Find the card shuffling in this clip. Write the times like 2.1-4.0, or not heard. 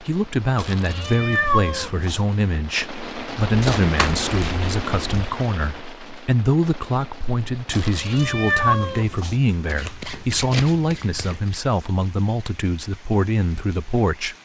3.5-5.3, 9.7-11.6.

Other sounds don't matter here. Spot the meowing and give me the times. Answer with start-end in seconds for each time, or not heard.
0.6-2.2, 7.7-9.3.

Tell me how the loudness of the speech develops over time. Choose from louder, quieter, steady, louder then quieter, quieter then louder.
steady.